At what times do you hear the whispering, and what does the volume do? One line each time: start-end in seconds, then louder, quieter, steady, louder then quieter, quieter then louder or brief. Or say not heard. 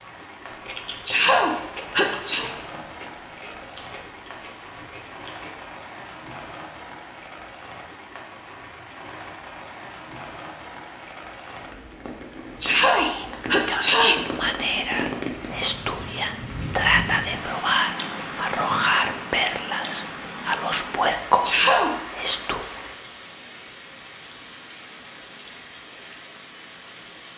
12.8-22.6 steady.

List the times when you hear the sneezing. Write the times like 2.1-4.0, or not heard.
1.1-2.5, 12.6-14.2, 21.4-21.9.